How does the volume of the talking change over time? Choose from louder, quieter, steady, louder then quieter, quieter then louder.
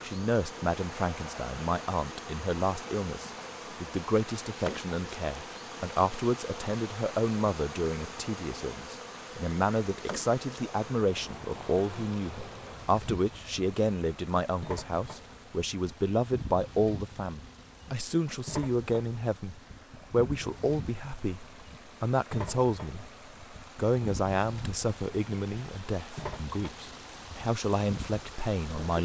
steady.